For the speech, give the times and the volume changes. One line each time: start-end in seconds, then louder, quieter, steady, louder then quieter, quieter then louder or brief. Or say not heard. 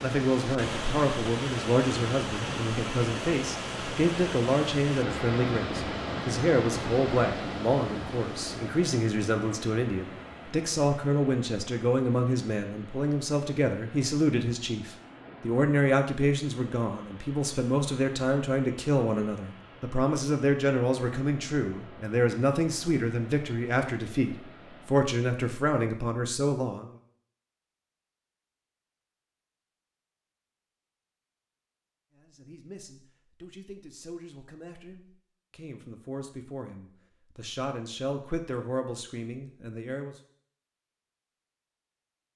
0.0-26.9 steady
32.1-40.1 louder.